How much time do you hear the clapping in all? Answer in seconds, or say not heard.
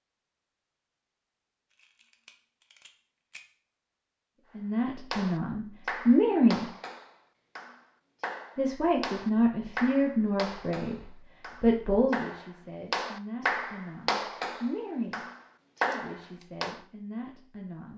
12 s.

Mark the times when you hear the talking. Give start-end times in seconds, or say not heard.
4.5-6.7, 8.6-15.2, 15.8-17.9.